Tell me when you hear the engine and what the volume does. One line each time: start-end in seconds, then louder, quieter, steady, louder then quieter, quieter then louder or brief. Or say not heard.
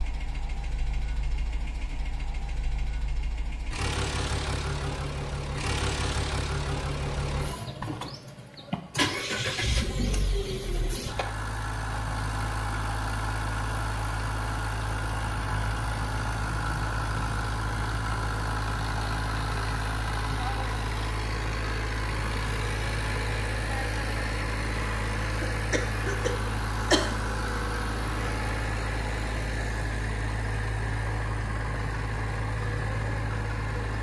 0.0-33.9 steady.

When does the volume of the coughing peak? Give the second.
27 s.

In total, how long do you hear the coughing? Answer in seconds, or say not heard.
2 s.